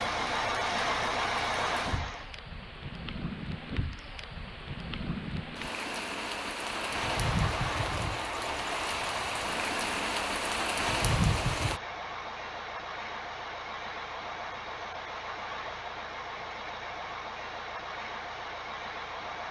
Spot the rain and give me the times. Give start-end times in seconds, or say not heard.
0.0-11.8.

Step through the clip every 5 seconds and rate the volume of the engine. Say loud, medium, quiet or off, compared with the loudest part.
loud, medium, medium, medium.